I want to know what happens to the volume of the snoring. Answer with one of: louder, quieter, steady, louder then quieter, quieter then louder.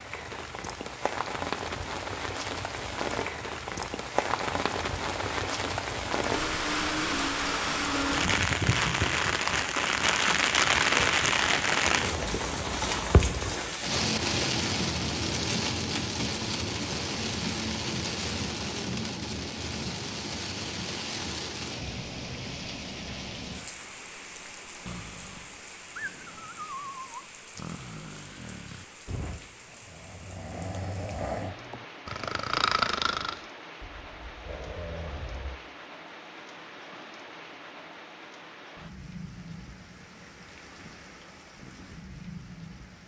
louder then quieter.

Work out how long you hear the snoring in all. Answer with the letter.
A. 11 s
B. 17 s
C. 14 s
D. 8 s
A.